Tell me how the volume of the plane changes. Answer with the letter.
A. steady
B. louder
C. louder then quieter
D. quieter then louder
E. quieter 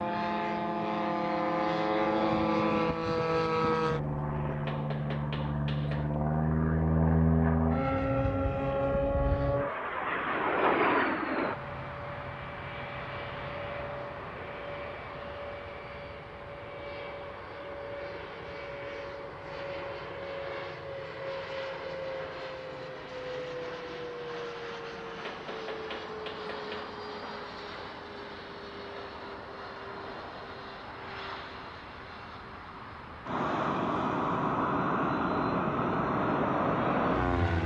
D.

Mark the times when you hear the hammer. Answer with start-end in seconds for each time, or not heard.
4.7-6.2, 25.2-27.0.